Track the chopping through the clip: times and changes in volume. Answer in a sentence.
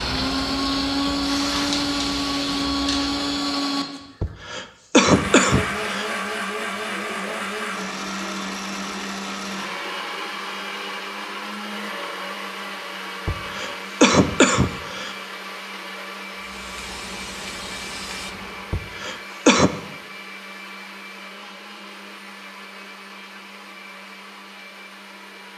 The chopping can't be heard in this clip.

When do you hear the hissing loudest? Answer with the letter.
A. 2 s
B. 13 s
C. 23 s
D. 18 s
A.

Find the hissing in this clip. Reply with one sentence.
The hissing can be heard from 0.0 to 3.4 s and from 16.4 to 18.6 s.